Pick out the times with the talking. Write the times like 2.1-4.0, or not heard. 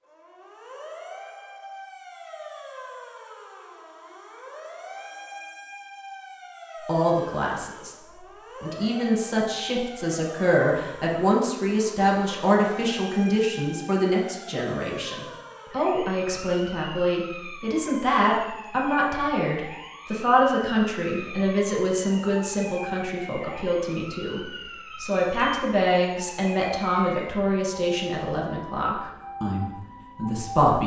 6.8-8.0, 8.6-30.8.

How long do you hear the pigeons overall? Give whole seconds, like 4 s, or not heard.
not heard.